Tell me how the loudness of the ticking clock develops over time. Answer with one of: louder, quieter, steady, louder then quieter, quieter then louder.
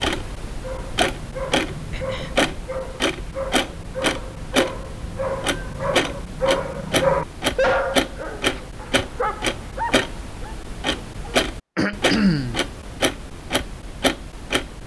steady.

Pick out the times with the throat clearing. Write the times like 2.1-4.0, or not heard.
1.9-2.4, 11.8-12.7.